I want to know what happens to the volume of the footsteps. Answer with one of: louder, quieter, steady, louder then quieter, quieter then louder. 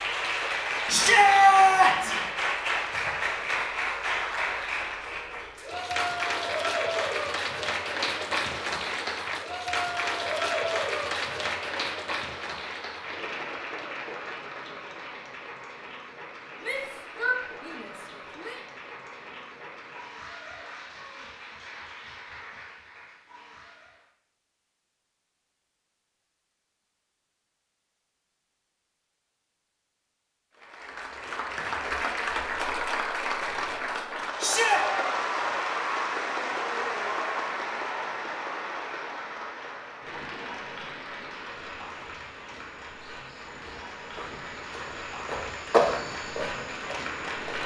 louder then quieter.